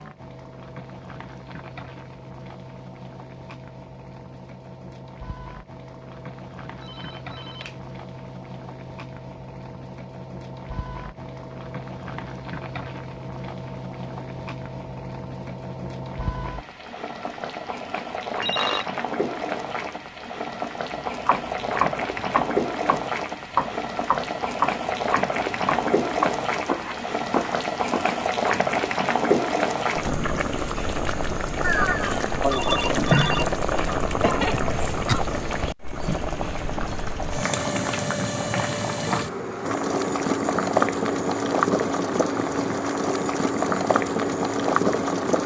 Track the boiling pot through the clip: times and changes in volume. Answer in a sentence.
The boiling pot can be heard from 0.0 to 45.4 s, getting louder.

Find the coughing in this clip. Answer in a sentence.
You can hear the coughing from 34.0 to 35.3 s.